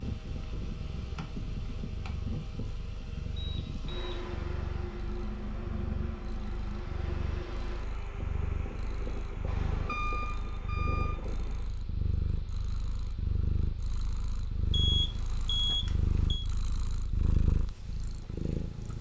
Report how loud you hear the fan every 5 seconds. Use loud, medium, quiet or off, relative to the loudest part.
loud, loud, medium, quiet.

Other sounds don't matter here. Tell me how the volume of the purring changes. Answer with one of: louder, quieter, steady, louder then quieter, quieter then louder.
louder.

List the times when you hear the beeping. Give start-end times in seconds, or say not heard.
3.4-4.1, 9.4-11.2, 14.7-16.4.